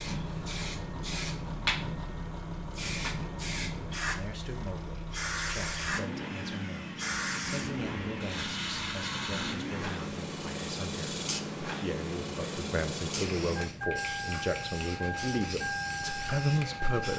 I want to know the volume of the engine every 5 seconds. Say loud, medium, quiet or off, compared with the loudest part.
medium, loud, loud, loud.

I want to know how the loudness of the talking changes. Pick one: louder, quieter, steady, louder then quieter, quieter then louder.
louder.